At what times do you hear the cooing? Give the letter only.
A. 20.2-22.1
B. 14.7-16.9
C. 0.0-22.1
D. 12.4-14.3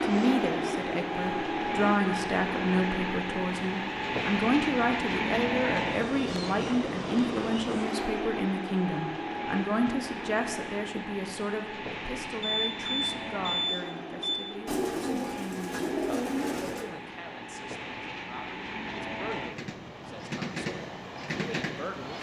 B.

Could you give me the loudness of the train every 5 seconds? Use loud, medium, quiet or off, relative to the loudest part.
loud, loud, medium, medium, medium.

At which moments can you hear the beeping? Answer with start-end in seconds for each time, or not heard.
12.4-14.3.